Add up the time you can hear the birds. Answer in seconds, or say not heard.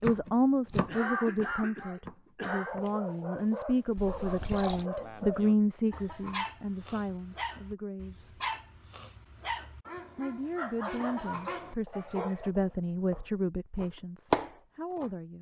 not heard.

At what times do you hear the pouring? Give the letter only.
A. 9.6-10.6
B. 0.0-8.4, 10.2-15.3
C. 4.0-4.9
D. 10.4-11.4
C.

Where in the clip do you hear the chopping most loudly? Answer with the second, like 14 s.
14 s.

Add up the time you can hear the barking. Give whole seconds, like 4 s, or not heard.
10 s.